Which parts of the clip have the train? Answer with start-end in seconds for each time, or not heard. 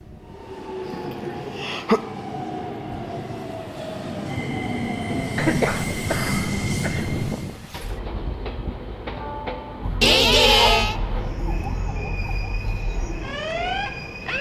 0.0-14.3.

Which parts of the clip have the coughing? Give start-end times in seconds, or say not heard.
0.8-2.0, 5.3-7.2, 10.0-11.0.